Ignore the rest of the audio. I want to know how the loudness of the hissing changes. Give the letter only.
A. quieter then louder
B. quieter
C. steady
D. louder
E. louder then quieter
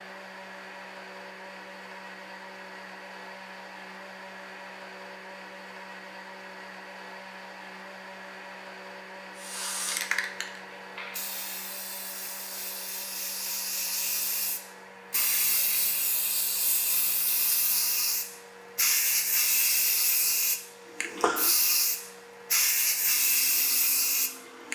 D.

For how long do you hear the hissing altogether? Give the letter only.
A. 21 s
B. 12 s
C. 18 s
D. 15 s
D.